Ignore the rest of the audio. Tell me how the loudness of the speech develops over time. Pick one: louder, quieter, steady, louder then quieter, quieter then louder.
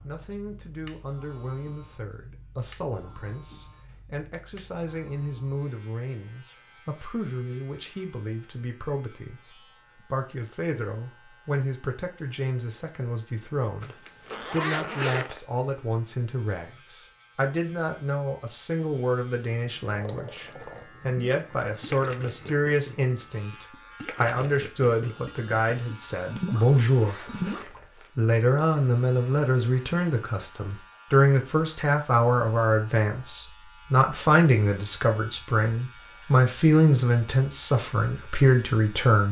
louder.